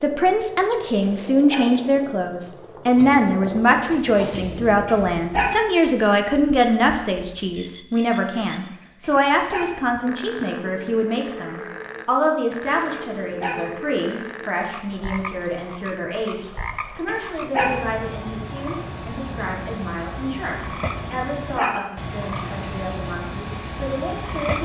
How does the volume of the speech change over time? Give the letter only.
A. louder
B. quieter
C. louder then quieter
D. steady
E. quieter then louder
B.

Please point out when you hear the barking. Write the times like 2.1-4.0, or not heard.
1.0-1.7, 4.8-5.5, 9.0-9.8, 12.9-13.7, 17.1-17.8, 21.1-21.8.